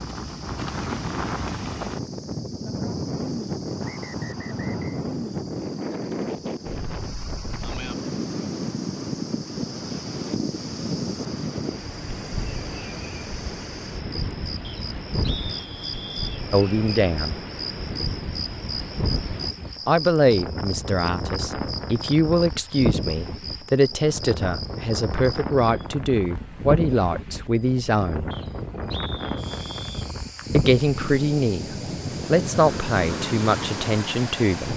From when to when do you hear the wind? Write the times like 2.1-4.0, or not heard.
0.0-34.7.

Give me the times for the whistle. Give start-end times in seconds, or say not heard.
3.8-5.0, 14.6-16.4, 28.3-30.1.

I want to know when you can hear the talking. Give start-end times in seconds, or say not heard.
16.5-17.4, 19.9-28.3, 30.5-34.7.